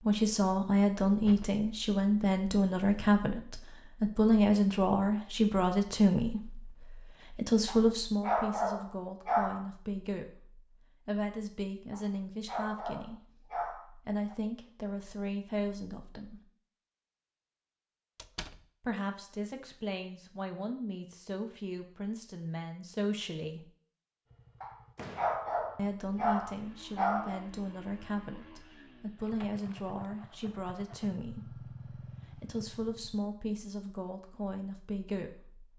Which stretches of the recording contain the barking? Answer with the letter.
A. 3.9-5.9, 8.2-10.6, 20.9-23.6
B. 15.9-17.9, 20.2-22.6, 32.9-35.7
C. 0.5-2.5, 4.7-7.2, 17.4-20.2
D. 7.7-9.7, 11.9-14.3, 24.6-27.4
D.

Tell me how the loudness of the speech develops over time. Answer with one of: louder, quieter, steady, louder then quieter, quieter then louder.
quieter.